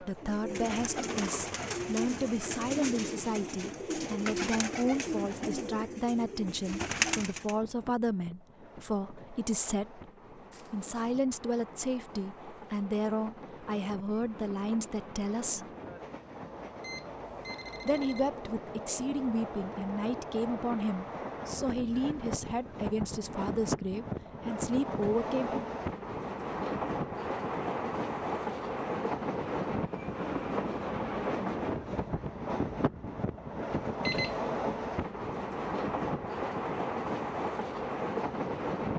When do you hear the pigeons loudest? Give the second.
7 s.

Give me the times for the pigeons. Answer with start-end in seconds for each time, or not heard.
0.1-7.5.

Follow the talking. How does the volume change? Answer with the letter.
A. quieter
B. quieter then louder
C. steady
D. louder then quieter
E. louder
C.